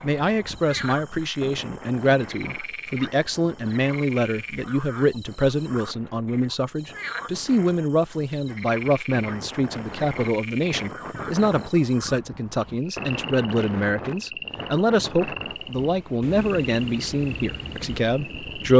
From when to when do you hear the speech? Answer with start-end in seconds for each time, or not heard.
0.0-18.7.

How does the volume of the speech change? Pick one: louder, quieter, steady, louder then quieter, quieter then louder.
steady.